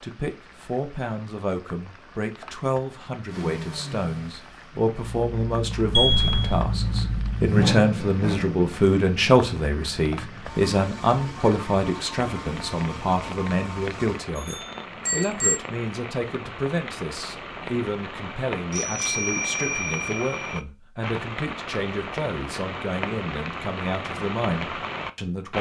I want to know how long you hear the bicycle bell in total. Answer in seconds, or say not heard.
4 s.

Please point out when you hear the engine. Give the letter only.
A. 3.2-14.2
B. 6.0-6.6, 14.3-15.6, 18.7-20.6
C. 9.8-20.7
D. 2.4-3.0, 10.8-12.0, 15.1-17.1
A.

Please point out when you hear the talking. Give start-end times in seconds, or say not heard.
0.0-25.5.